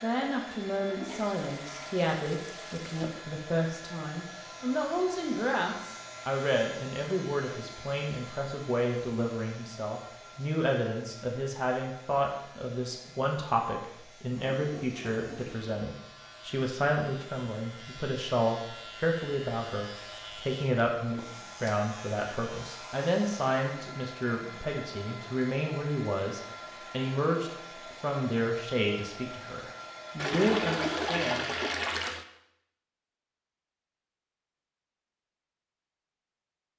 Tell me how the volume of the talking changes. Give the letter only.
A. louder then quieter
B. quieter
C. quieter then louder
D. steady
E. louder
D.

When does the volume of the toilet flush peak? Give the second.
31 s.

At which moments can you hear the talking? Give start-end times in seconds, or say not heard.
0.0-31.4.